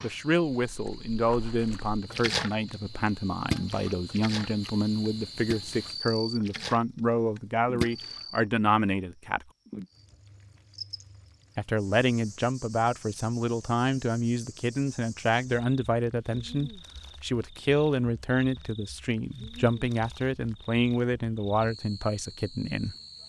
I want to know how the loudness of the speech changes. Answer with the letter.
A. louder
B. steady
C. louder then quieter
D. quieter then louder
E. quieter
B.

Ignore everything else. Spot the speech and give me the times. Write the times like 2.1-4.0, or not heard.
0.0-9.4, 11.6-22.9.